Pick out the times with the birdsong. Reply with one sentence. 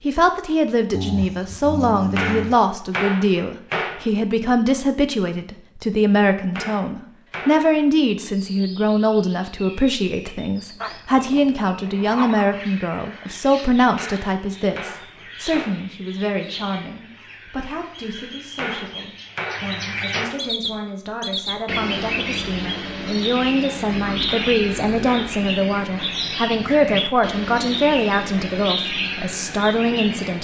You can hear the birdsong from 8.3 to 30.3 s.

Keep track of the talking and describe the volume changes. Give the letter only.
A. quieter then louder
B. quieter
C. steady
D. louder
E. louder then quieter
A.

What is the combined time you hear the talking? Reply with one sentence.
You can hear the talking for 30 seconds altogether.